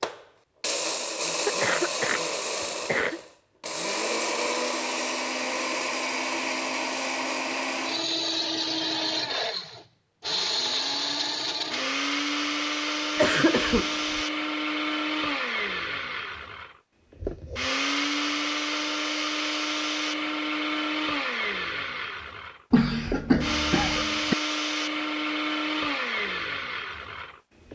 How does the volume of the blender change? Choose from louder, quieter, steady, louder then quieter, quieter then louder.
steady.